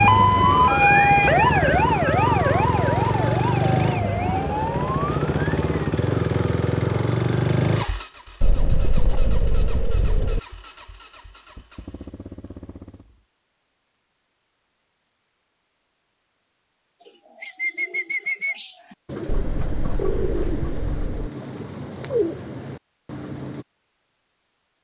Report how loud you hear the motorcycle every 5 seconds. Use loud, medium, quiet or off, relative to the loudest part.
loud, loud, quiet, off, off.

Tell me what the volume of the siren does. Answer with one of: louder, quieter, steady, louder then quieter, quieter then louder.
quieter.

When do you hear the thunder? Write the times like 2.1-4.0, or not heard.
8.4-10.4, 19.2-21.2.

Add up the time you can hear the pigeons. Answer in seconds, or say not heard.
7 s.